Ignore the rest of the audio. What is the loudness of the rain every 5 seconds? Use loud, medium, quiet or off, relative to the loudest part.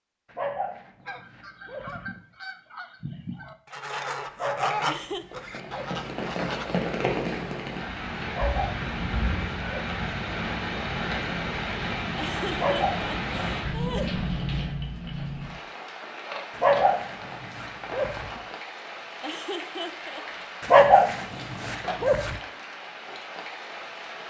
off, loud, loud, medium, medium.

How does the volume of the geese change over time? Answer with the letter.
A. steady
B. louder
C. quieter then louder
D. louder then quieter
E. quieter
D.